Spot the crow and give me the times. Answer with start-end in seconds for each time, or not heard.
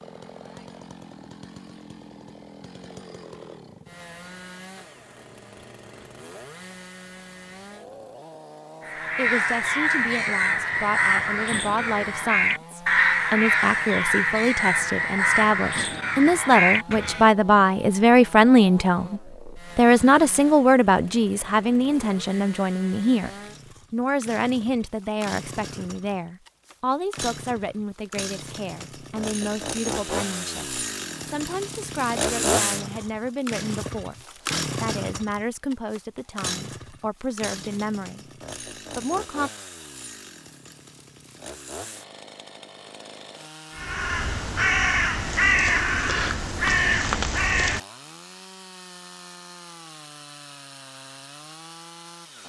8.8-17.3, 43.8-47.8.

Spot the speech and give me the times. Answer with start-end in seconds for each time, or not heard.
9.2-23.3, 23.9-34.1, 34.8-38.2, 39.0-39.5.